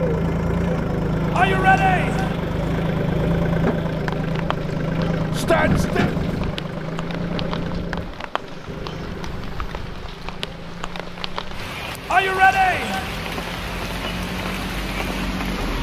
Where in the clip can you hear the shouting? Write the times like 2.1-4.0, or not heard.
1.4-2.4, 5.3-6.1, 12.1-13.1.